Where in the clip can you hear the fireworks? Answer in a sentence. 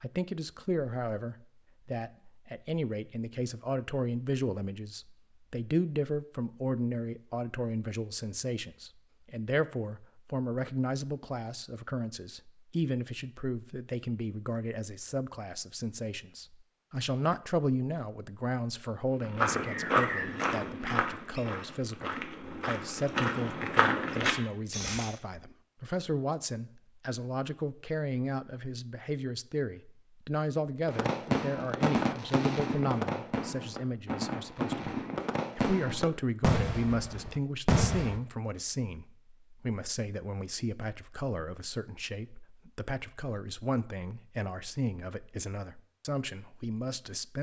You can hear the fireworks from 30.9 to 38.2 s.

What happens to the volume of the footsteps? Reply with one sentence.
The volume of the footsteps goes down, then up.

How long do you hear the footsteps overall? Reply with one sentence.
You can hear the footsteps for 6 seconds altogether.